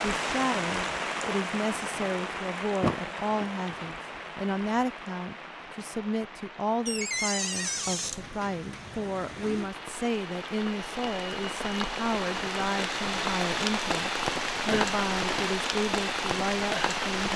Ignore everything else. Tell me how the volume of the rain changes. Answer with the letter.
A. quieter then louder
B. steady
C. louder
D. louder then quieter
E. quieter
A.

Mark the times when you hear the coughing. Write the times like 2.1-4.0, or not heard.
not heard.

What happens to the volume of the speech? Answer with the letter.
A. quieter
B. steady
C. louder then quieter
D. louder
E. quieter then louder
B.